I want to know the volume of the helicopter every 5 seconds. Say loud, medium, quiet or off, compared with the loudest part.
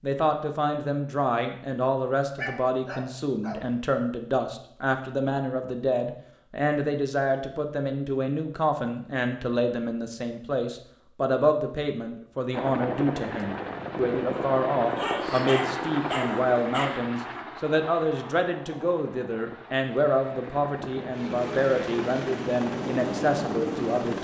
off, off, loud, loud, loud.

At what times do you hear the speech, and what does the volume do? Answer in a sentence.
The speech can be heard from 0.0 to 24.1 s, at a steady volume.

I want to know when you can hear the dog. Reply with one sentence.
The dog can be heard from 2.4 to 3.6 s and from 14.9 to 16.9 s.